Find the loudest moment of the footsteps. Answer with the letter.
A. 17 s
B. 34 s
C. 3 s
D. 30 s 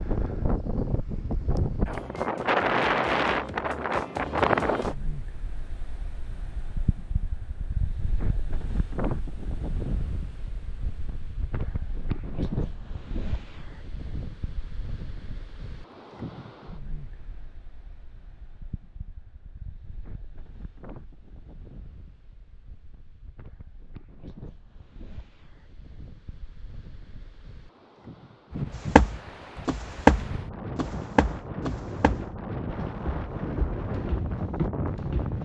D.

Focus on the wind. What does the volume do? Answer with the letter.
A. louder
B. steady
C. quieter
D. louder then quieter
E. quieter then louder
E.